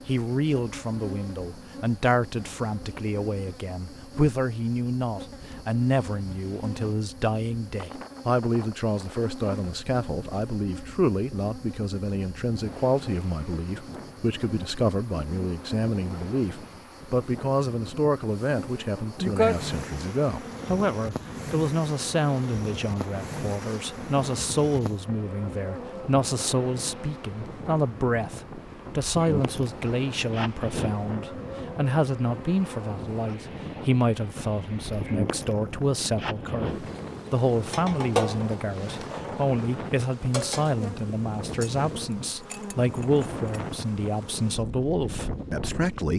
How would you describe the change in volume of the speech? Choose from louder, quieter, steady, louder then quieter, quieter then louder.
steady.